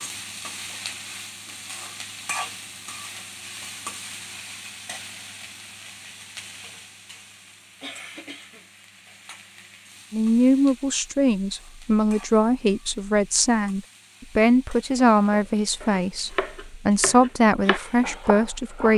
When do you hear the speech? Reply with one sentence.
The speech can be heard from 10.1 to 18.9 s.